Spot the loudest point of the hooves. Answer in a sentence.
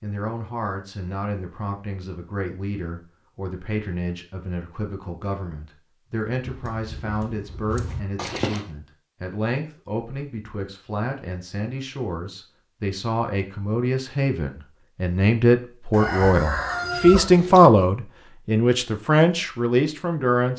The volume of the hooves peaks at 8 seconds.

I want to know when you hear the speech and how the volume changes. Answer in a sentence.
You can hear the speech from 0.0 to 20.5 s, getting louder.